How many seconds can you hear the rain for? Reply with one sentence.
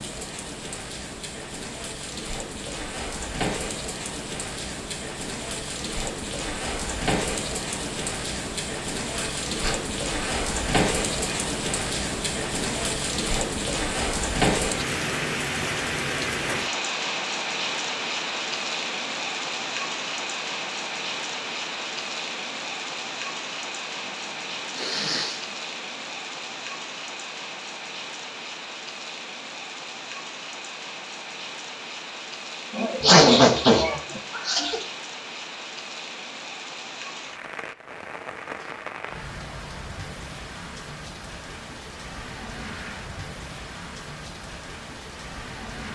The rain can be heard for 46 seconds in total.